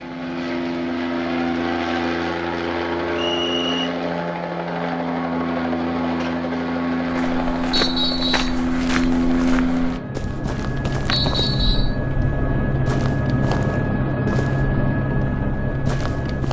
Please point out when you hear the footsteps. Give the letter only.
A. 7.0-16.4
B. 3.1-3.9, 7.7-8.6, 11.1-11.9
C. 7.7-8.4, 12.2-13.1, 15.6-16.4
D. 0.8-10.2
A.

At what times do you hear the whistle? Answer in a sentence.
The whistle can be heard from 3.1 to 3.9 s, from 7.7 to 8.6 s and from 11.1 to 11.9 s.